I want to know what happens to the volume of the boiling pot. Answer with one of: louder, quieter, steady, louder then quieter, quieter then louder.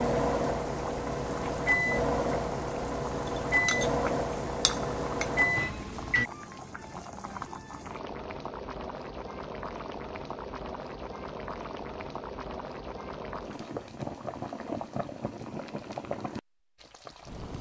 steady.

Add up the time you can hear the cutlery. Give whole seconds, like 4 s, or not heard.
not heard.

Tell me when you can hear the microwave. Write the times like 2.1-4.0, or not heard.
0.0-6.3.